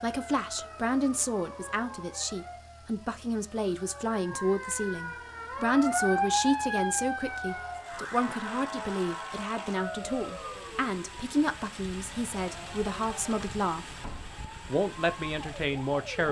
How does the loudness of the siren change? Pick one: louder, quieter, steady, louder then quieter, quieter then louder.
louder then quieter.